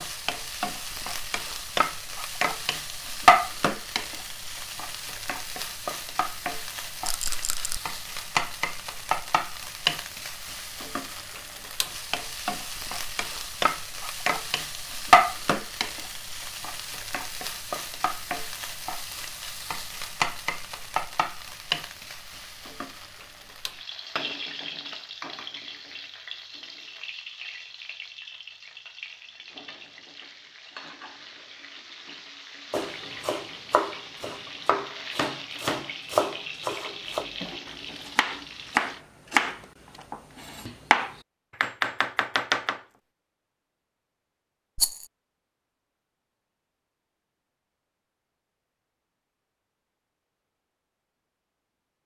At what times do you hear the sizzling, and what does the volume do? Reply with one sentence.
The sizzling can be heard from 0.0 to 39.0 s, getting quieter.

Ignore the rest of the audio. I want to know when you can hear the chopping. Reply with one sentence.
You can hear the chopping from 32.7 to 42.8 s.